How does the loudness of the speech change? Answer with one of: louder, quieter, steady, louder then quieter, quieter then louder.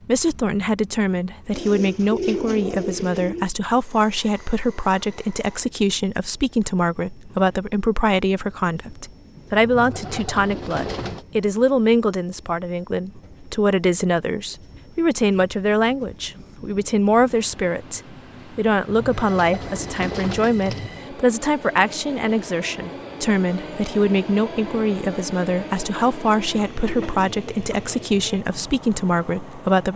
steady.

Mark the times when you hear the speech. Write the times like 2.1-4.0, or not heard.
0.1-29.9.